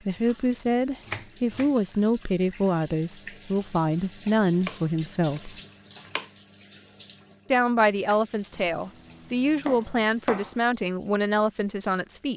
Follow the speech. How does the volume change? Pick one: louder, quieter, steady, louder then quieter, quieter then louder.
steady.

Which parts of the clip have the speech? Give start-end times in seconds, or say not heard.
0.1-5.5, 7.5-12.3.